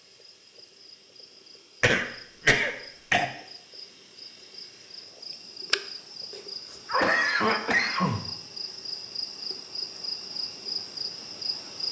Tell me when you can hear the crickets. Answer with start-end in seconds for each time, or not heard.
0.0-11.8.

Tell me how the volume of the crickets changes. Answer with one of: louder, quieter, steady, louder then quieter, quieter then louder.
louder.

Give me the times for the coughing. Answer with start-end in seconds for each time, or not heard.
1.8-3.3, 6.7-8.2.